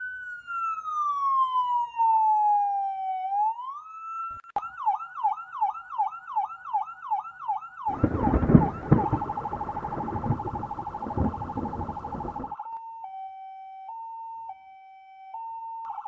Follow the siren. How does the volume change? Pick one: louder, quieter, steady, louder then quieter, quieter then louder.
quieter.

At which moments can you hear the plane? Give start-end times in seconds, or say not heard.
not heard.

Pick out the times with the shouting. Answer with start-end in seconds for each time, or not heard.
not heard.